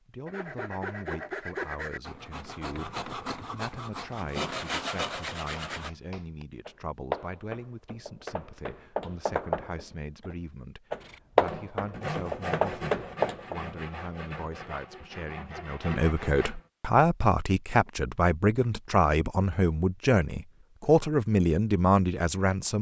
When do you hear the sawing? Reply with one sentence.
The sawing can be heard from 0.2 to 5.9 s and from 11.0 to 16.6 s.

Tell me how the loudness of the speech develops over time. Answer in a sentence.
The loudness of the speech goes up.